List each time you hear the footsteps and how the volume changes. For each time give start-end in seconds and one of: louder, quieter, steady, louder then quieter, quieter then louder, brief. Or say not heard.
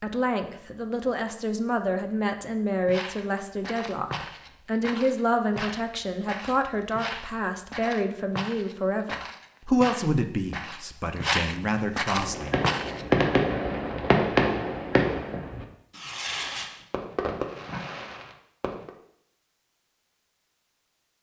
2.9-13.1 louder.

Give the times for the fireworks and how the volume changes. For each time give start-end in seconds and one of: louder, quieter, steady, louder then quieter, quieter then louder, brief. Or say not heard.
12.1-18.9 quieter.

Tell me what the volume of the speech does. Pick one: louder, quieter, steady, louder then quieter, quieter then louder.
steady.